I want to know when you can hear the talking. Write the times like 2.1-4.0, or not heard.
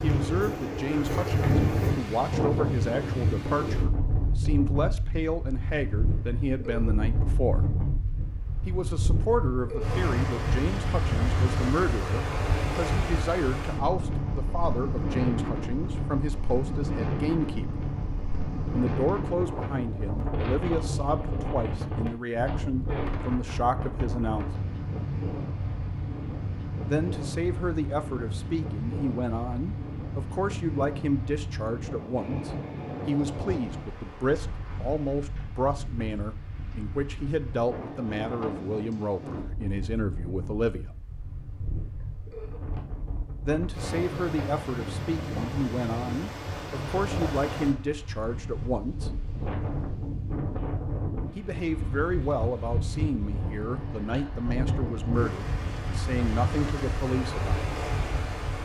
0.0-7.6, 8.7-17.7, 18.7-24.4, 26.9-40.9, 43.4-49.1, 51.4-57.6.